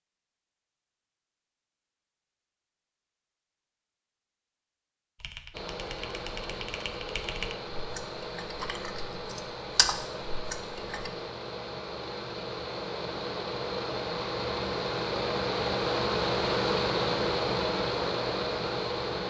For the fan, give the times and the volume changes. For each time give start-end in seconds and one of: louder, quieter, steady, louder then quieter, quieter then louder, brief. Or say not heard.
5.5-19.2 louder.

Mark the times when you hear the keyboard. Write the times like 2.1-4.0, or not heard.
5.2-11.1.